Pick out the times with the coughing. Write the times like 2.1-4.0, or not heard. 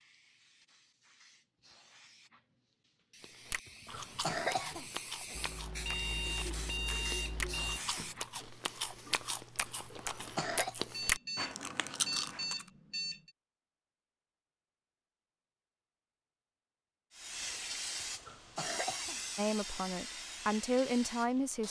3.6-5.5, 9.9-10.8, 18.0-19.2.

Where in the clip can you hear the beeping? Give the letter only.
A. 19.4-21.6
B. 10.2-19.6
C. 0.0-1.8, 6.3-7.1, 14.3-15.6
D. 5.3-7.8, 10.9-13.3
D.